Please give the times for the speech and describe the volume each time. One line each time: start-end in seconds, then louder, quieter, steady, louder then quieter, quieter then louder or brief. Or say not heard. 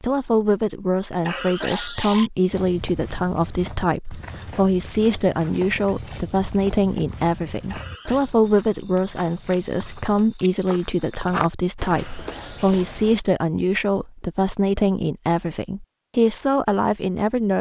0.0-17.5 steady.